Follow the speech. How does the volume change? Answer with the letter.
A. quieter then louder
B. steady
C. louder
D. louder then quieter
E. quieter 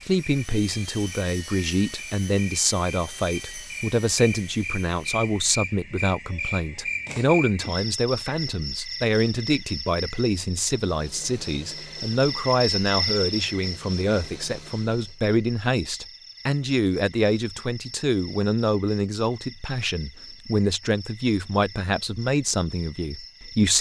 B.